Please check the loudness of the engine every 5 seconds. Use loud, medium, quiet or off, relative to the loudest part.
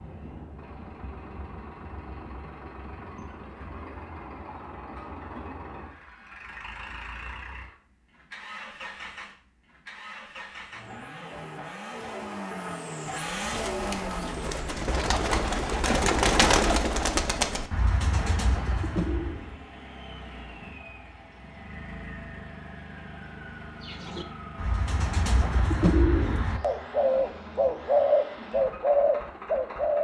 medium, medium, loud, medium, medium, medium.